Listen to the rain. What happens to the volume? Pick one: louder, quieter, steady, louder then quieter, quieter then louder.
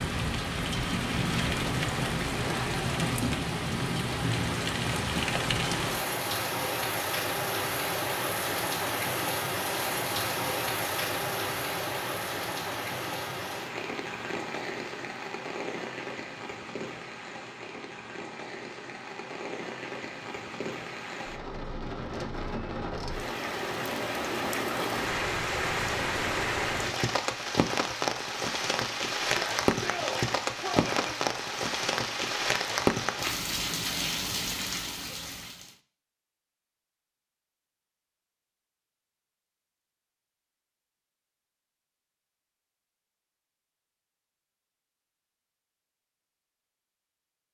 quieter then louder.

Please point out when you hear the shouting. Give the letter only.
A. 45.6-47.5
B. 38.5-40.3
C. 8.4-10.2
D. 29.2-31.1
D.